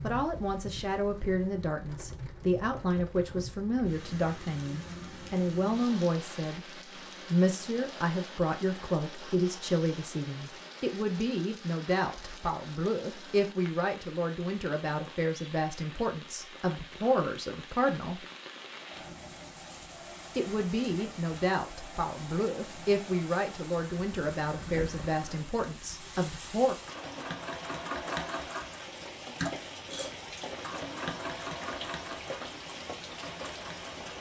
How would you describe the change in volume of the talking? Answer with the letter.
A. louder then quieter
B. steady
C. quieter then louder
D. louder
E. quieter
B.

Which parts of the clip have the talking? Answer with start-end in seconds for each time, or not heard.
0.0-6.6, 7.3-18.2, 20.4-26.8.